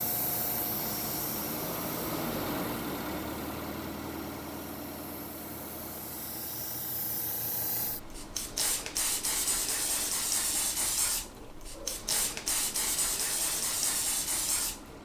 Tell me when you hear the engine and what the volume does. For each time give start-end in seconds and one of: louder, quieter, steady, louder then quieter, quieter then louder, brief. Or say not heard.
0.0-15.0 quieter.